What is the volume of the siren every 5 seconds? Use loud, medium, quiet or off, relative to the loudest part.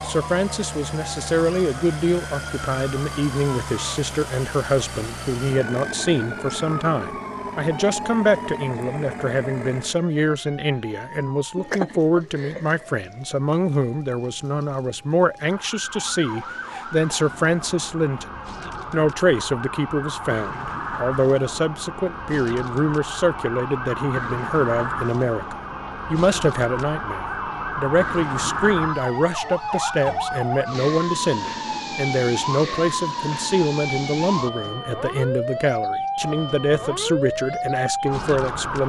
medium, medium, medium, medium, loud, loud, loud, loud.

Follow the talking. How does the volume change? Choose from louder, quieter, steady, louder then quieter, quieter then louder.
steady.